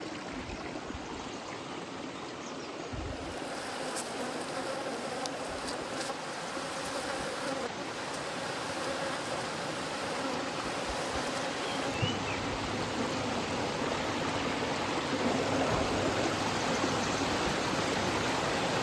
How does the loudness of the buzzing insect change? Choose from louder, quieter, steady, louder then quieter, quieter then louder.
steady.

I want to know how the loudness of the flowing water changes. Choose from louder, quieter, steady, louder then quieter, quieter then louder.
louder.